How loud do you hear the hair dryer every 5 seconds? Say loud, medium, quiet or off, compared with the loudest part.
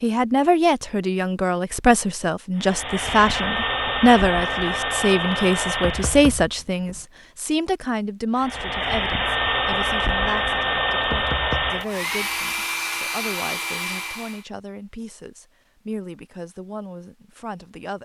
loud, loud, loud, off.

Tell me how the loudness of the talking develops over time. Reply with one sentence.
The loudness of the talking goes down.